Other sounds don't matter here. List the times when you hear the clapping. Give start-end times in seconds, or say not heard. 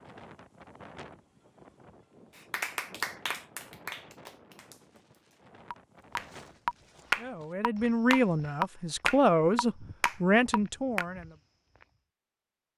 2.5-11.1.